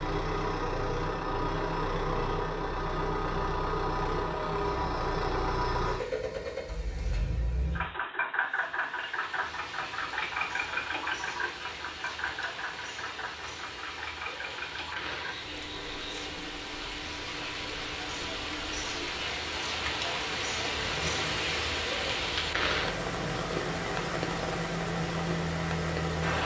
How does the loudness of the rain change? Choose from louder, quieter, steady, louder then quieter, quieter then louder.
louder.